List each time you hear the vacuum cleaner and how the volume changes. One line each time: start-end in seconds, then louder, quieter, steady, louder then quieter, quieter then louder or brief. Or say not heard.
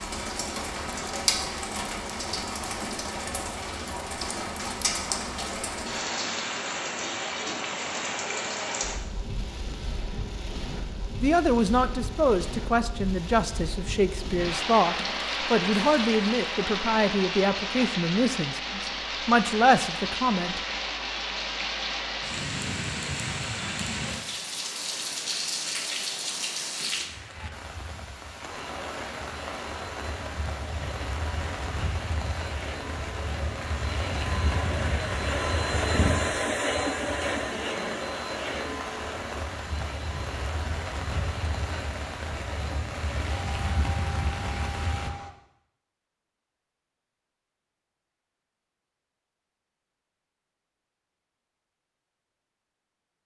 28.5-45.3 louder then quieter.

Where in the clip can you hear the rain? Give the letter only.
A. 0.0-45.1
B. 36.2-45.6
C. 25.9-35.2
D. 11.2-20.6
A.